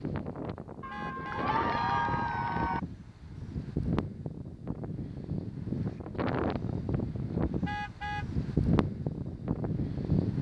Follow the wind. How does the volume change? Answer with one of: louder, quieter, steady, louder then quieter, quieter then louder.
louder.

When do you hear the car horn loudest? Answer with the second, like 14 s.
8 s.